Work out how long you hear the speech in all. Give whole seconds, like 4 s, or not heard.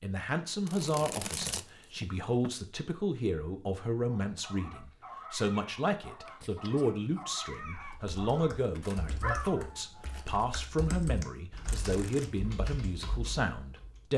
14 s.